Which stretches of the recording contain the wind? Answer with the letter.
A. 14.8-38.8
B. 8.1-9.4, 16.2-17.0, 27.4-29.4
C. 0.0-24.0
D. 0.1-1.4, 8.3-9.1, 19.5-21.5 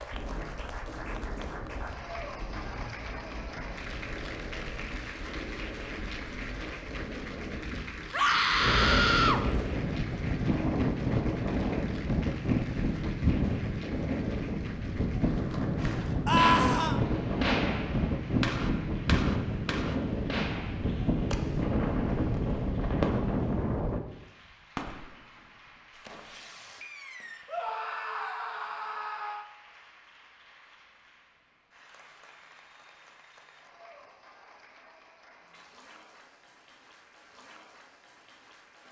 C.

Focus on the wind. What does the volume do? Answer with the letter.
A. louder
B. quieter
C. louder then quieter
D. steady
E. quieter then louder
A.